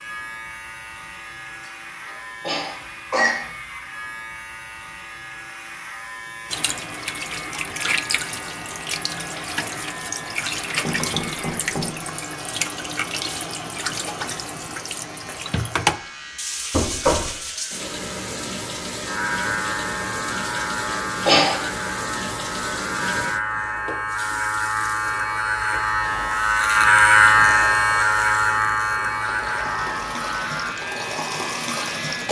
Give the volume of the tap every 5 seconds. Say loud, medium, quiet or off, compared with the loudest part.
off, loud, loud, loud, loud, medium, loud.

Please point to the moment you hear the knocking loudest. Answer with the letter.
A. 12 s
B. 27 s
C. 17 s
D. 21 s
C.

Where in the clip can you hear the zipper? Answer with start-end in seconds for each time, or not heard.
not heard.